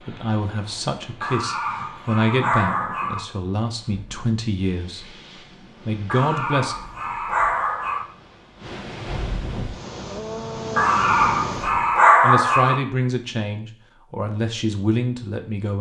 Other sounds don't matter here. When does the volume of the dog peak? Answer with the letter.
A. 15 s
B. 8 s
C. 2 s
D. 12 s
D.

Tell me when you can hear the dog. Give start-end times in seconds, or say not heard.
1.2-3.2, 6.0-8.1, 10.8-12.8.